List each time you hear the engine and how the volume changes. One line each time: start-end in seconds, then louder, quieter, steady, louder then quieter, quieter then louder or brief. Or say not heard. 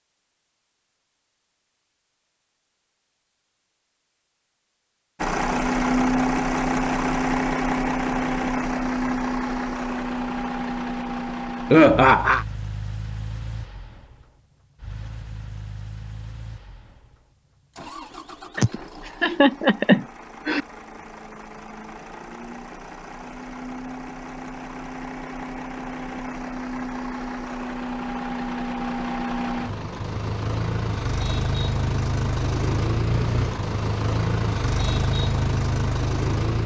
5.2-36.6 quieter then louder.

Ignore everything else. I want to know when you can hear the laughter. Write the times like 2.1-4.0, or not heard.
11.7-12.4, 18.6-20.6.